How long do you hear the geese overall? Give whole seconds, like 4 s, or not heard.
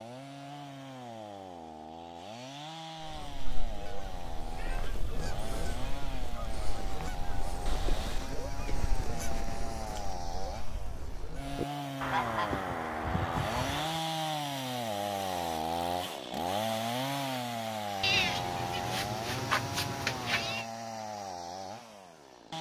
11 s.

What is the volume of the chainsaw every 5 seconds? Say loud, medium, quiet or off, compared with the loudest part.
medium, medium, loud, loud, medium.